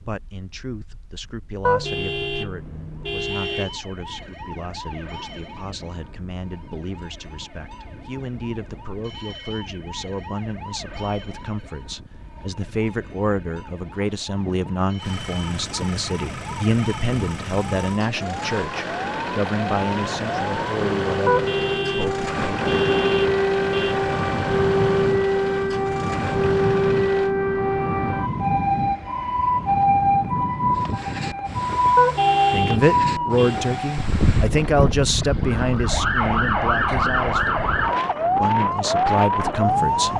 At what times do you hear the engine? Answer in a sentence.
The engine can be heard from 14.9 to 27.4 s.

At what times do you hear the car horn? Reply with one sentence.
You can hear the car horn from 1.6 to 3.7 s, from 21.2 to 23.9 s and from 31.9 to 33.6 s.